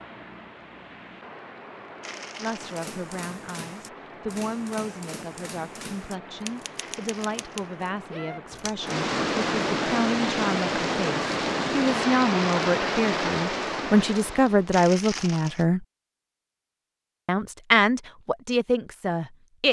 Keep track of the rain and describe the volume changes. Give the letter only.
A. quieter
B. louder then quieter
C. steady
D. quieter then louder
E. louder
E.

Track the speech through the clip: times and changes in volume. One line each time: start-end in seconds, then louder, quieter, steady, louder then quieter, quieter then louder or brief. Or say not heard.
2.4-15.8 louder
17.2-19.6 brief.